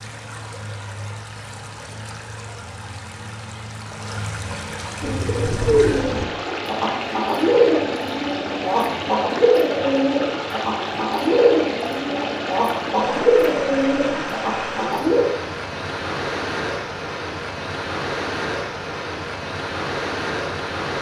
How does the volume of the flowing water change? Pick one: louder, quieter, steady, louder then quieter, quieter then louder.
louder.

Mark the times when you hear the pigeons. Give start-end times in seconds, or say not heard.
5.0-15.2.